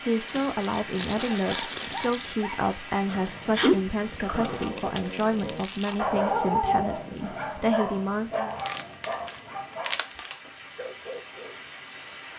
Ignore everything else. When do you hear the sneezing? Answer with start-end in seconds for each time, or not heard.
3.1-4.7.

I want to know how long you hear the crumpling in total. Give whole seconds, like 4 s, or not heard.
6 s.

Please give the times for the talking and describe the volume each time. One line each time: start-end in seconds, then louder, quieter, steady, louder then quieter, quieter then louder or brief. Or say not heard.
0.0-8.6 steady.